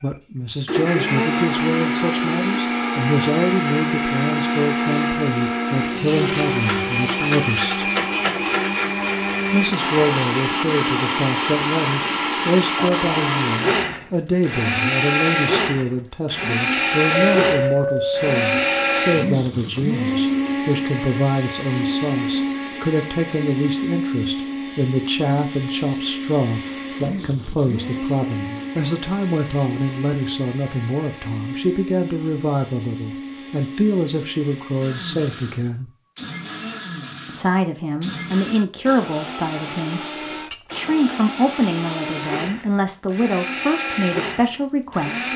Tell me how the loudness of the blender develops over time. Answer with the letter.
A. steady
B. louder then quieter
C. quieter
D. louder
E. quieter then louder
C.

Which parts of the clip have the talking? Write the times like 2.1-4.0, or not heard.
0.0-7.9, 9.5-35.9, 37.2-40.0, 40.7-45.2.